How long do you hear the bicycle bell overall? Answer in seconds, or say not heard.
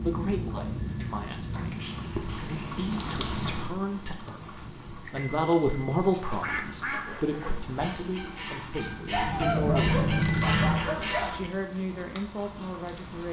5 s.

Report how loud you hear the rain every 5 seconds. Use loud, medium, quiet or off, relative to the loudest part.
loud, medium, medium.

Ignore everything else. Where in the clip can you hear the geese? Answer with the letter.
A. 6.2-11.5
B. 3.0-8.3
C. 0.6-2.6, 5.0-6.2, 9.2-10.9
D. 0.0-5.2
A.